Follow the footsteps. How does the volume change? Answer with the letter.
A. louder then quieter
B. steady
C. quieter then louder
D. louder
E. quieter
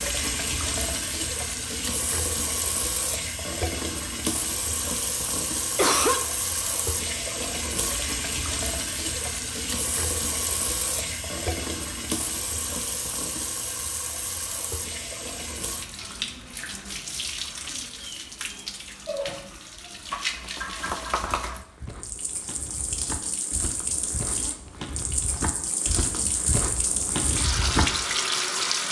D.